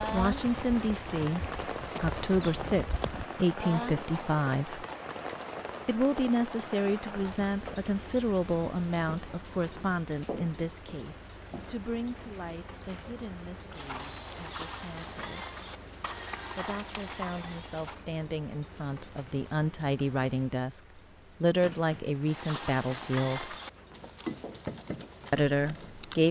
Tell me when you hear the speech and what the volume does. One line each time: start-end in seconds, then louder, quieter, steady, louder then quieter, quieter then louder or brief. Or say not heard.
0.1-4.8 steady
5.8-15.5 quieter
16.6-20.8 louder
21.4-23.6 brief
25.3-26.2 brief.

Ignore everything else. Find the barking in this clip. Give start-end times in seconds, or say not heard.
not heard.